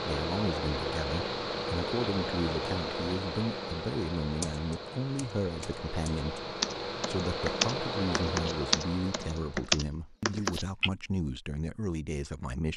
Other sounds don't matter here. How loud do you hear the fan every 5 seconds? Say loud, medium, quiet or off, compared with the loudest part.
loud, loud, off.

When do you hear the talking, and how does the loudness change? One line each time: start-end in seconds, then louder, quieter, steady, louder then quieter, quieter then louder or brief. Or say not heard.
0.1-12.7 steady.